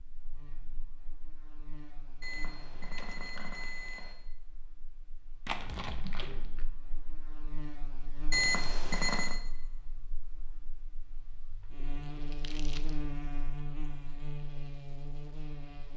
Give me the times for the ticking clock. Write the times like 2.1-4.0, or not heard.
not heard.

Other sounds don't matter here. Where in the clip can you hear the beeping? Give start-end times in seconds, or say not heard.
2.2-4.2, 8.3-9.4.